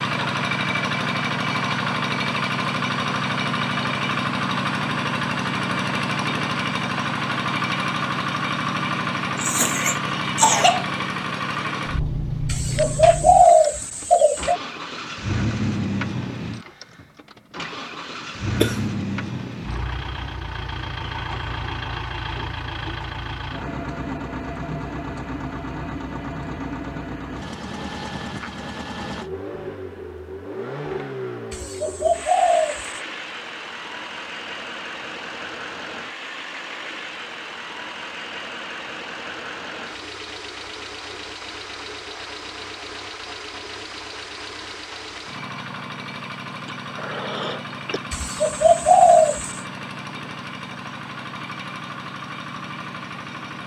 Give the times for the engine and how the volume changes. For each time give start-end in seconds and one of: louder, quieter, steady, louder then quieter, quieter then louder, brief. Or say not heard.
0.0-53.6 quieter.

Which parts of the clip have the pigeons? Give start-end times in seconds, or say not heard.
12.4-14.6, 31.5-33.0, 48.1-49.6.